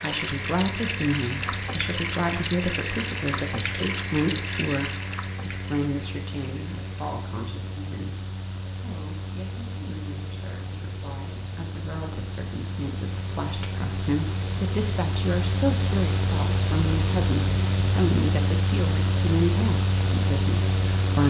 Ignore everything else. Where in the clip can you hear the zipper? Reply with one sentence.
The zipper can't be heard in this clip.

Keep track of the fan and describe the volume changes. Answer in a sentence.
The volume of the fan goes up.